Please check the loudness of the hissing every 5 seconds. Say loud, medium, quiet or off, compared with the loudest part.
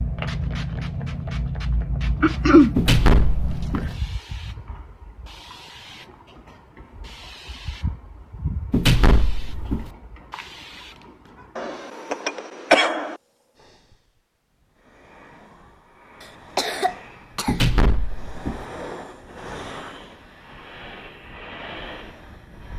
loud, medium, quiet, medium, medium.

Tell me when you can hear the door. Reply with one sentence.
You can hear the door from 2.8 to 4.0 s, from 8.7 to 9.9 s and from 17.4 to 18.6 s.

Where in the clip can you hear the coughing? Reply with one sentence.
You can hear the coughing from 2.2 to 2.8 s, from 11.6 to 13.2 s and from 16.2 to 17.6 s.